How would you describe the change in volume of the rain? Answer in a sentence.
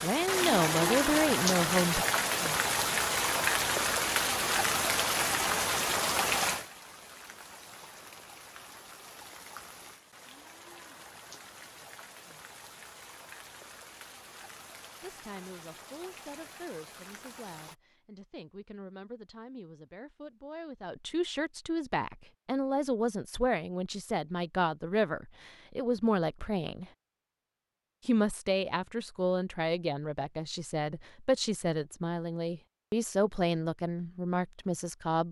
The loudness of the rain goes down.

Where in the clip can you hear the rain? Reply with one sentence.
You can hear the rain from 0.0 to 17.8 s.